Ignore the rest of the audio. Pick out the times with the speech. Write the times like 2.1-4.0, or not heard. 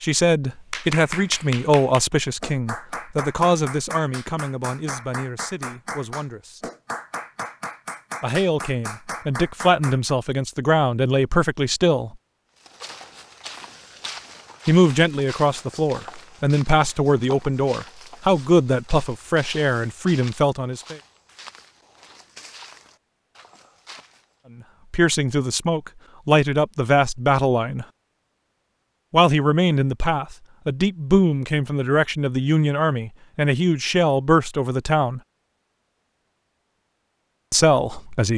0.0-6.7, 8.2-12.2, 14.7-20.9, 24.9-27.9, 29.1-35.2, 37.5-38.3.